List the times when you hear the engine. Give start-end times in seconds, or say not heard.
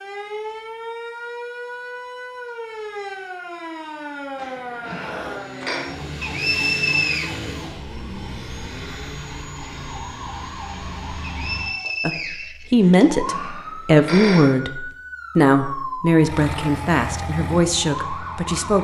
4.9-11.8, 16.1-18.7.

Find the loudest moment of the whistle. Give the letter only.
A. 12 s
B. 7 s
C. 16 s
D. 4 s
B.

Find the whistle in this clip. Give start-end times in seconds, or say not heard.
6.2-7.3, 11.2-12.8.